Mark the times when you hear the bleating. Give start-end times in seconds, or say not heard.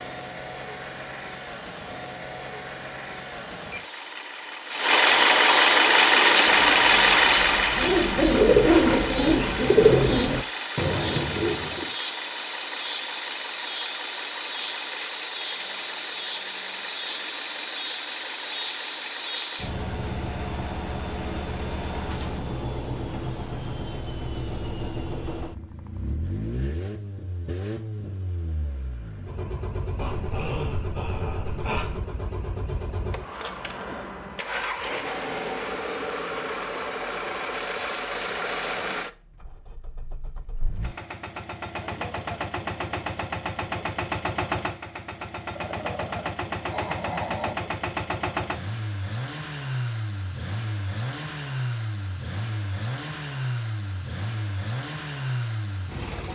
not heard.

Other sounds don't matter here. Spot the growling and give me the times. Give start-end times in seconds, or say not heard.
9.8-10.3, 29.9-32.0, 45.5-47.5.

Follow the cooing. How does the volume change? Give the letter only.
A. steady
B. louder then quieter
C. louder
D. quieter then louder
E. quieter
B.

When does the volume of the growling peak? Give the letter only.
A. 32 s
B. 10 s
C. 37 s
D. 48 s
B.